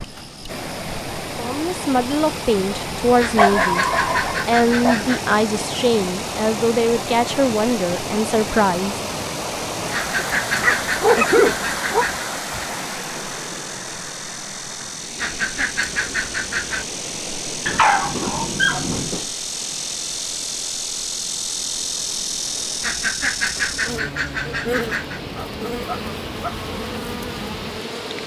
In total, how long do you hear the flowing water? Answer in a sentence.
You can hear the flowing water for 28 seconds altogether.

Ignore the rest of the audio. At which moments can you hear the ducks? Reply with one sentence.
The ducks can be heard from 3.1 to 5.2 s, from 9.9 to 12.2 s, from 15.2 to 16.9 s and from 22.8 to 25.2 s.